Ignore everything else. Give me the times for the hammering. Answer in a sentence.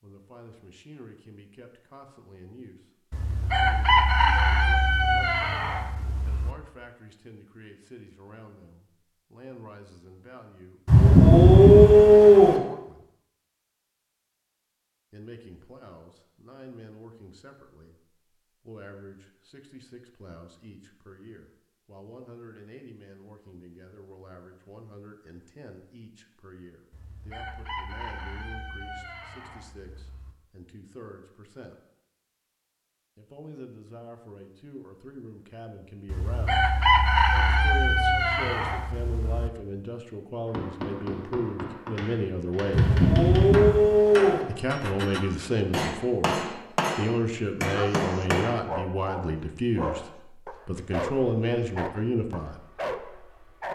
The hammering can be heard from 40.5 to 48.6 s.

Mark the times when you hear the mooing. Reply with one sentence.
You can hear the mooing from 10.8 to 12.6 s and from 42.7 to 44.5 s.